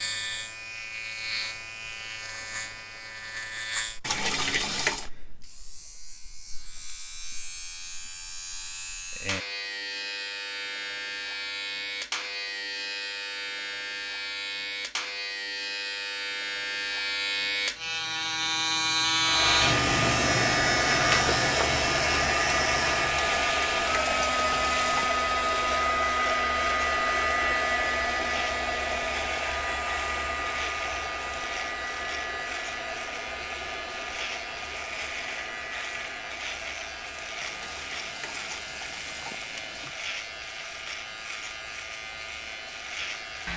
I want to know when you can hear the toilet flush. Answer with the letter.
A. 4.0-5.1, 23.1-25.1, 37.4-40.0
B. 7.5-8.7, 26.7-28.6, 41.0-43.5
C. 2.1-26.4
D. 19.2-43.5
A.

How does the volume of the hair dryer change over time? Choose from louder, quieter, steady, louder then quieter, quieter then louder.
quieter.